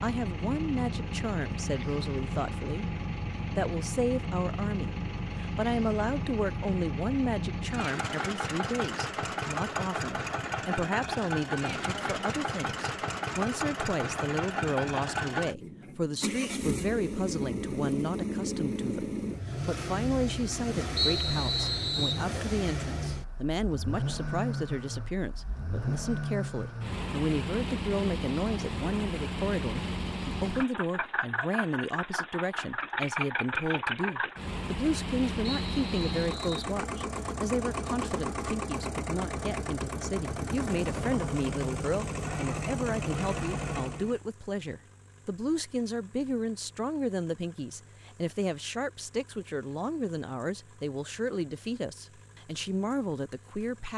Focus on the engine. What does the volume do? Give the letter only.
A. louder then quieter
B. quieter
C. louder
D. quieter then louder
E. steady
B.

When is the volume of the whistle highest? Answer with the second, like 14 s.
21 s.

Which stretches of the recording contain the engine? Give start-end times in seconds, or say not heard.
0.0-53.9.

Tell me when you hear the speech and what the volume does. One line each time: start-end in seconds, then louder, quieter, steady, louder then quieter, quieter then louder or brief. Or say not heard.
0.0-2.9 brief
3.5-53.9 steady.